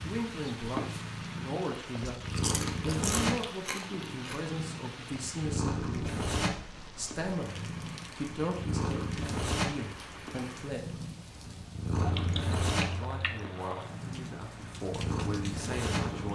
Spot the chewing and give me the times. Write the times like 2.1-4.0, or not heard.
2.0-4.4, 11.9-13.5.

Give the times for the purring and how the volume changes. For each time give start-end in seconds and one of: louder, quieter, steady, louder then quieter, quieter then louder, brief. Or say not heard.
0.0-16.2 steady.